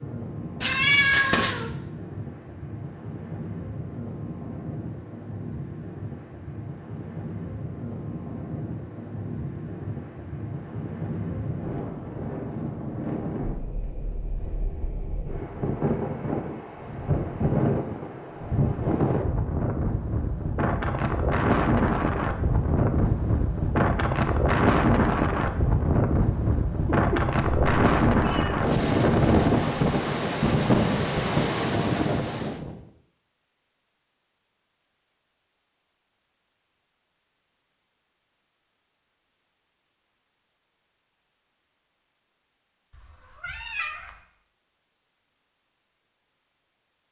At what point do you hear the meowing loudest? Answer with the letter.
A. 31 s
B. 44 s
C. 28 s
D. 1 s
D.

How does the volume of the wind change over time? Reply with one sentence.
The volume of the wind goes up.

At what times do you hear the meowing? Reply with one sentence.
You can hear the meowing from 0.6 to 1.7 s, from 26.9 to 28.6 s and from 42.9 to 44.1 s.